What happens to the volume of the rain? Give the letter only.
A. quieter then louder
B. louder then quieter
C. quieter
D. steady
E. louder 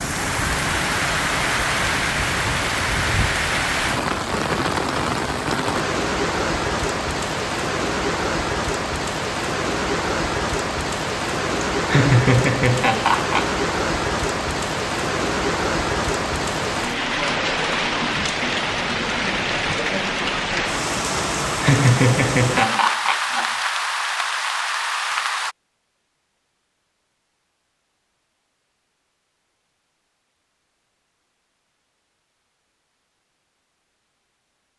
D.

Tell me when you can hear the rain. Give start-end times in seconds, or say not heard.
0.0-25.6.